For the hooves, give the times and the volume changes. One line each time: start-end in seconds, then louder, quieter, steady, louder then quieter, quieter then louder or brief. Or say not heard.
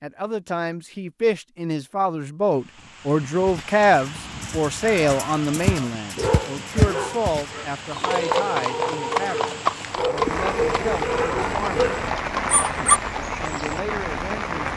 3.5-13.8 louder then quieter.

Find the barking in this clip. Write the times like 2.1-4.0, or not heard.
4.8-13.0.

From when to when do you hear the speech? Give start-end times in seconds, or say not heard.
0.0-11.9, 12.8-14.7.